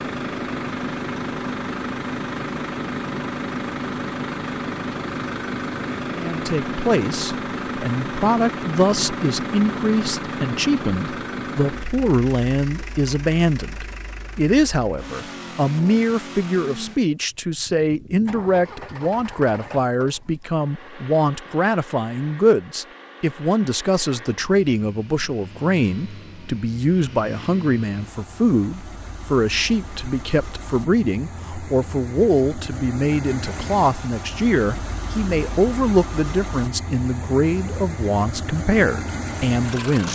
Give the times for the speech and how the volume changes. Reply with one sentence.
The speech can be heard from 6.2 to 40.1 s, at a steady volume.